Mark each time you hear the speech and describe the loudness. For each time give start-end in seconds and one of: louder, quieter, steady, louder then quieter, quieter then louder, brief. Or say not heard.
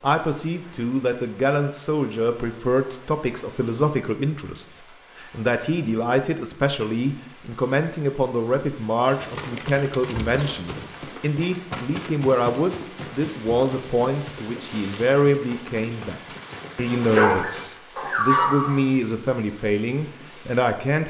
0.0-21.0 steady.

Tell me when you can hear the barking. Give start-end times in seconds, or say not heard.
16.8-18.8.